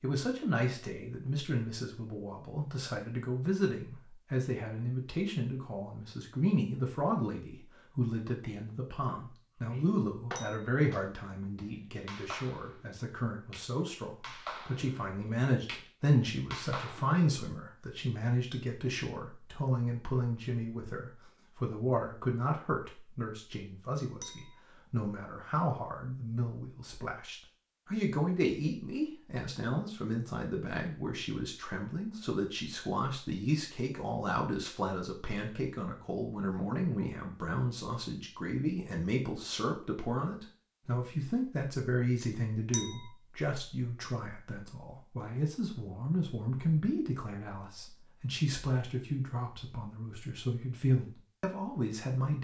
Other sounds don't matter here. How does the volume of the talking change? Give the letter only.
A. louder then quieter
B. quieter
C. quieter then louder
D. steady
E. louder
D.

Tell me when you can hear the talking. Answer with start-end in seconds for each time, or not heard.
0.0-52.3.